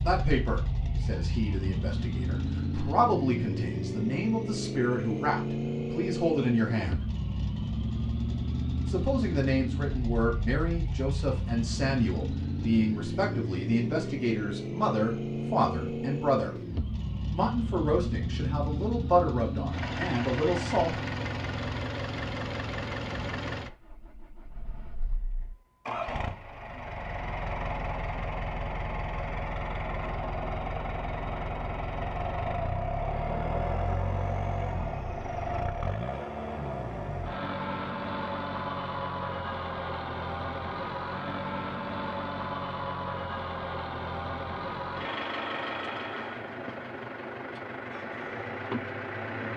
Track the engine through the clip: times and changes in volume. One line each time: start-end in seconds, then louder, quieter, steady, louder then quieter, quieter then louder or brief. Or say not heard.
0.0-49.5 steady.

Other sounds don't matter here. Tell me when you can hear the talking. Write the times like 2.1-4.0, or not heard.
0.0-7.0, 8.8-16.6, 17.3-21.0.